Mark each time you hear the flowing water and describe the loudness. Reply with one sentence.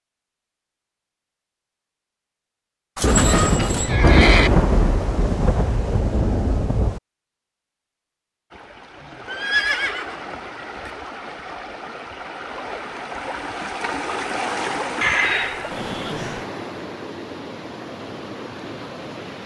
The flowing water can be heard from 8.5 to 19.4 s, getting louder then quieter.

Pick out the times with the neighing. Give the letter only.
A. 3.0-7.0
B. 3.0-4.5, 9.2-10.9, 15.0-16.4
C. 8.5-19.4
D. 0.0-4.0
B.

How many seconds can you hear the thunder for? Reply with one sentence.
The thunder can be heard for 4 seconds in total.